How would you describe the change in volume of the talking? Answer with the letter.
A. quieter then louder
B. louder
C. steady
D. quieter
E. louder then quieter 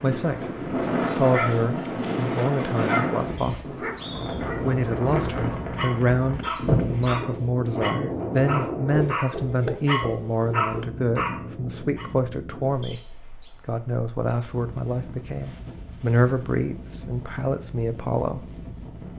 C.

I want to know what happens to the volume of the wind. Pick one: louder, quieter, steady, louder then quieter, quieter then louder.
quieter.